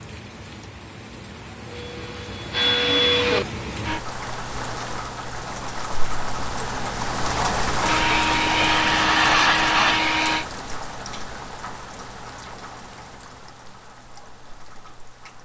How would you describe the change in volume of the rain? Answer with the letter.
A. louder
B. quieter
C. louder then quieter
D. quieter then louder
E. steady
C.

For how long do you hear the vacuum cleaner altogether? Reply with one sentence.
The vacuum cleaner can be heard for 5 seconds in total.